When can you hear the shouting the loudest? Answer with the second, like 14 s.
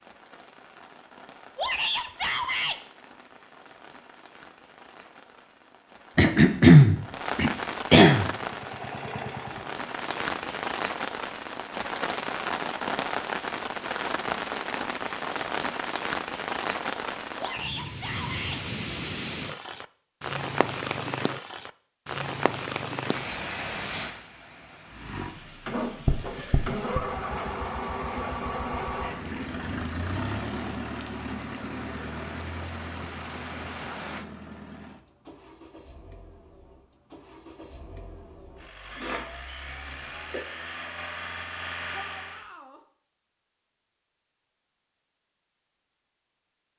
2 s.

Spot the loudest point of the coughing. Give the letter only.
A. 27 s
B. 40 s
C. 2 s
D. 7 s
D.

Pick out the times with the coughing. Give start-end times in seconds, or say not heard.
6.2-8.3, 26.1-27.1, 38.9-40.4.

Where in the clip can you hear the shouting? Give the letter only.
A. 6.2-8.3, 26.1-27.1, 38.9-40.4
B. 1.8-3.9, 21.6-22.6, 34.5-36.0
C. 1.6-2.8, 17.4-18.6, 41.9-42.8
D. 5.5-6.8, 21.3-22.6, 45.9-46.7
C.